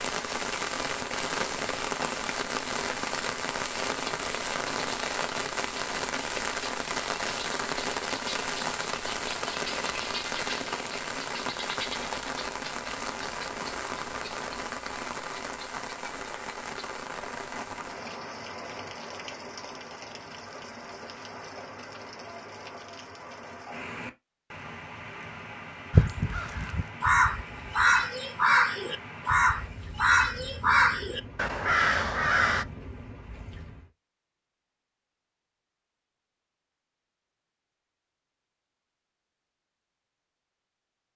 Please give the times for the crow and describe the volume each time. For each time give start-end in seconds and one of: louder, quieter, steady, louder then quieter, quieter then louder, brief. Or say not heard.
25.9-32.6 steady.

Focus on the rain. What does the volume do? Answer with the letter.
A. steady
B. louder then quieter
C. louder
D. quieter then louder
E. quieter
E.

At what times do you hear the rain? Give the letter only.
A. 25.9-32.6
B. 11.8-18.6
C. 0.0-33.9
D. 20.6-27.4
C.